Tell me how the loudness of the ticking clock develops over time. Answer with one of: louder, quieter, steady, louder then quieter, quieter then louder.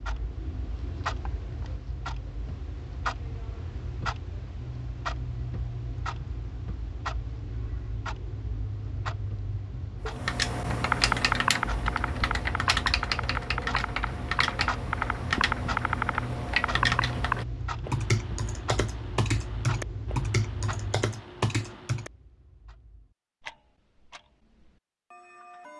quieter.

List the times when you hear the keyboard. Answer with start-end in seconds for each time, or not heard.
10.1-22.1.